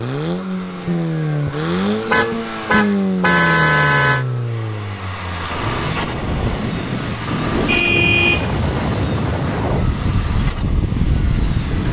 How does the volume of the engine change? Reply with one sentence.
The volume of the engine goes down.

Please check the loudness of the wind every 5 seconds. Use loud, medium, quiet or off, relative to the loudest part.
off, loud, loud.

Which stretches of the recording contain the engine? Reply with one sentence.
The engine can be heard from 0.0 to 11.8 s.